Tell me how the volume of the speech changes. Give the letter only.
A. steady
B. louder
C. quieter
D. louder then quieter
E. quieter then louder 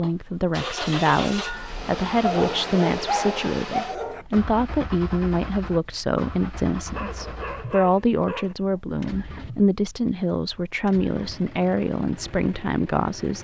A.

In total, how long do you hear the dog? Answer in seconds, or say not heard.
4 s.